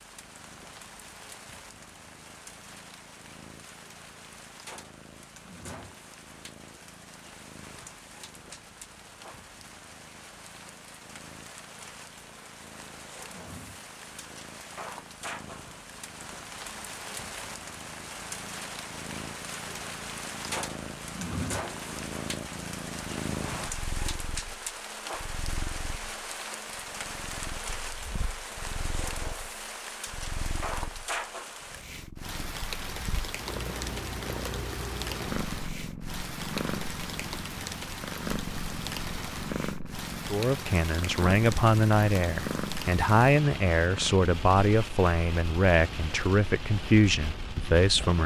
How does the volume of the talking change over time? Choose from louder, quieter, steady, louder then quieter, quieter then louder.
steady.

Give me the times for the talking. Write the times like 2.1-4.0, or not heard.
40.3-48.2.